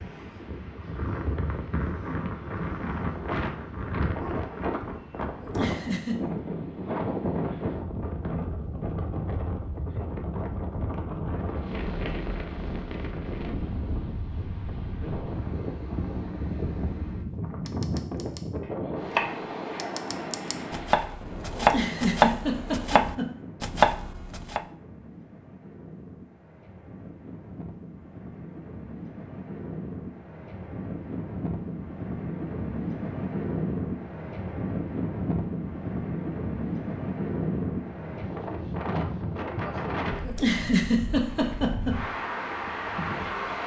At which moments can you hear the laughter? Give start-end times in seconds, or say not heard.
5.4-6.2, 21.6-23.3, 40.2-42.0.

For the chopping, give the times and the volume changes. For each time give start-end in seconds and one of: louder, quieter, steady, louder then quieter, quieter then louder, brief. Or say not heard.
17.6-24.6 quieter then louder.